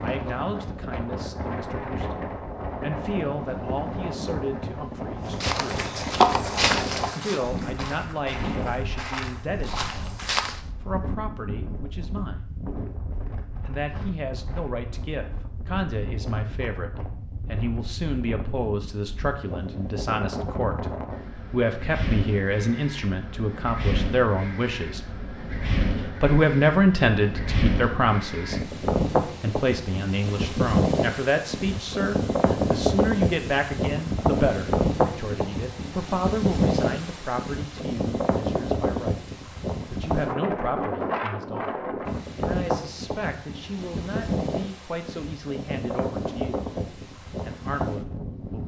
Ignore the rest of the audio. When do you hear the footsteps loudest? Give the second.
6 s.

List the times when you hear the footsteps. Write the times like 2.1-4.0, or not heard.
5.2-10.6.